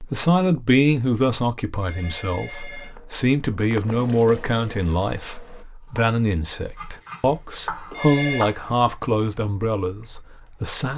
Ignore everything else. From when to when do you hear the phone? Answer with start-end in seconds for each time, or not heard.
1.8-3.0, 7.9-8.6.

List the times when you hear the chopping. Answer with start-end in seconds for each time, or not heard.
5.8-8.6.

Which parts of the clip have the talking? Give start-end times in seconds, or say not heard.
0.0-10.9.